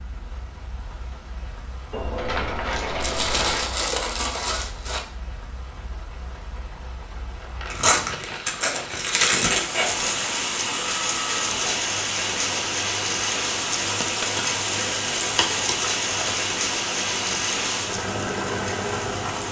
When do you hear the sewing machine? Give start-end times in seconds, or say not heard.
10.8-19.4.